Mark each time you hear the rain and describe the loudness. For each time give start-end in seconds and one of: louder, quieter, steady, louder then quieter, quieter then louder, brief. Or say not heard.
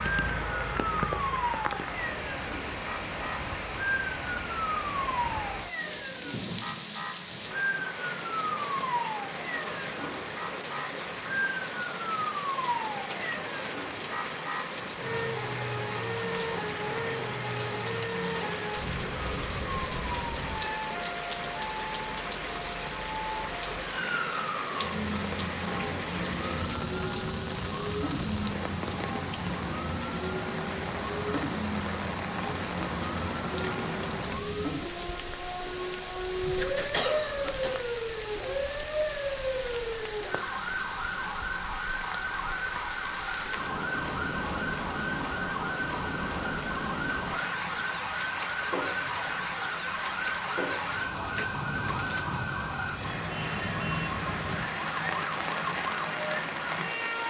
0.0-57.2 steady.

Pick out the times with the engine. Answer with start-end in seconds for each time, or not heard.
0.0-2.1.